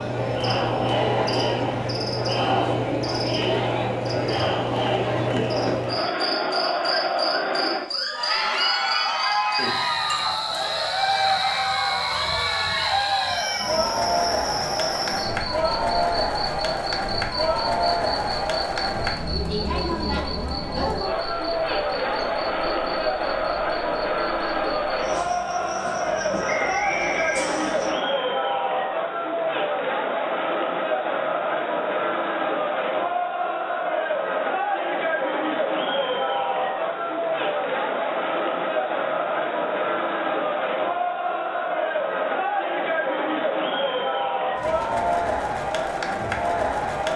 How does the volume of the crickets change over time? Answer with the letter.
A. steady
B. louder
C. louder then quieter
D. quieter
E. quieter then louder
D.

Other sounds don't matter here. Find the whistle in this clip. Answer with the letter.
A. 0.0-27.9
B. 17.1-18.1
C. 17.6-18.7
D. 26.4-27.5
D.